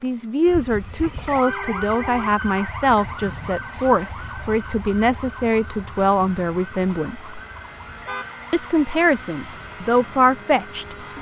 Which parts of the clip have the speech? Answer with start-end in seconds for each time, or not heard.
0.0-7.3, 8.5-10.9.